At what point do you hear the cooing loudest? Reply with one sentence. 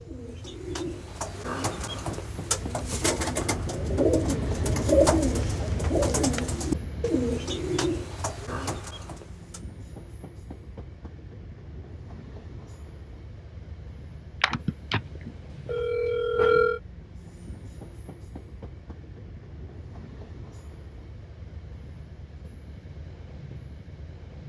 The loudest moment of the cooing is at 5 seconds.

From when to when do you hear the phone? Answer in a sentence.
You can hear the phone from 14.4 to 16.8 s.